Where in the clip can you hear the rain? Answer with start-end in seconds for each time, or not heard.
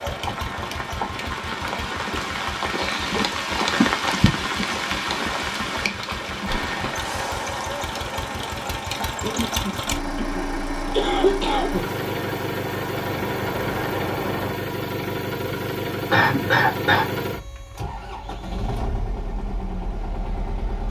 0.0-14.6.